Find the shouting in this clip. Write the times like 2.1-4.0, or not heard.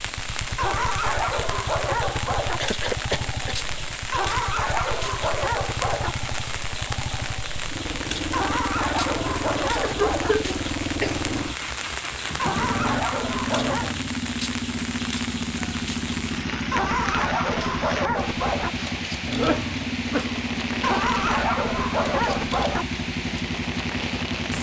not heard.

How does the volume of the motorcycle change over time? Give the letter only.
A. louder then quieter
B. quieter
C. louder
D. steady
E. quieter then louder
C.